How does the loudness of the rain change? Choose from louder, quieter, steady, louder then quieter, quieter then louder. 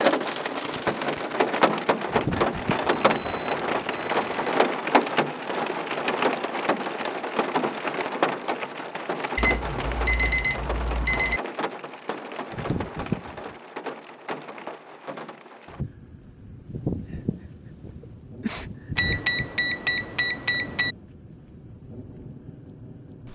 quieter.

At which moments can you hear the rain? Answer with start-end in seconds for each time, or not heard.
0.0-23.3.